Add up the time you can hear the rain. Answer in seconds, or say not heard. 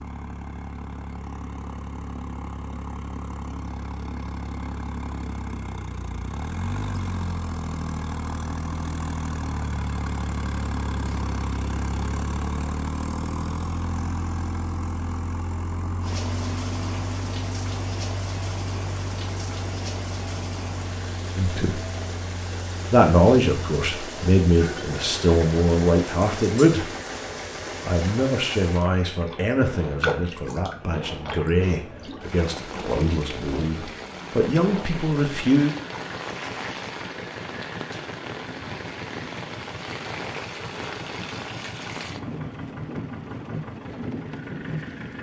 29 s.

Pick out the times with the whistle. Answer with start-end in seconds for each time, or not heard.
not heard.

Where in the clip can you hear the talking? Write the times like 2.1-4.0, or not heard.
21.4-21.8, 22.9-26.9, 27.8-35.8.